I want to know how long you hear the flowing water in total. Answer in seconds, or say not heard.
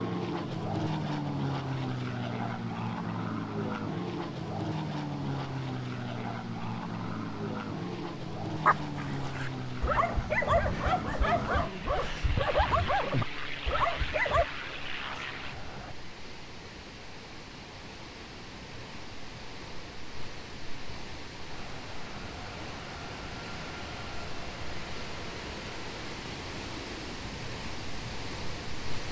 29 s.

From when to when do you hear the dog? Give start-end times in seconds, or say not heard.
8.6-14.4.